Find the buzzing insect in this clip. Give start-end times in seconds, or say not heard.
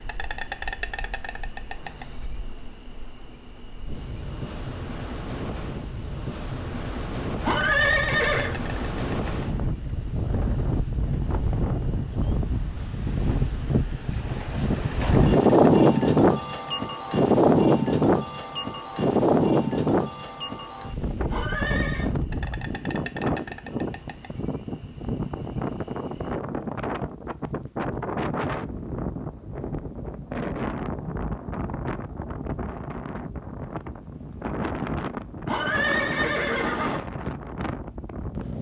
0.0-26.4.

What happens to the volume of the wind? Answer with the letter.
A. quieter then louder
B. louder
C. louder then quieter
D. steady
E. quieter
C.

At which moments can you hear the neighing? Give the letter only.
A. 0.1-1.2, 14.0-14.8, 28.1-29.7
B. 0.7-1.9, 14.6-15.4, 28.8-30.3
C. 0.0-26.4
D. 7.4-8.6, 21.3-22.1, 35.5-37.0
D.